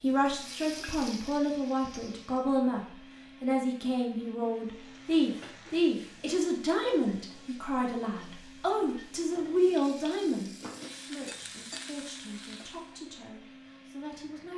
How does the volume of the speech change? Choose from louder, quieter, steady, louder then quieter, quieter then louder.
quieter.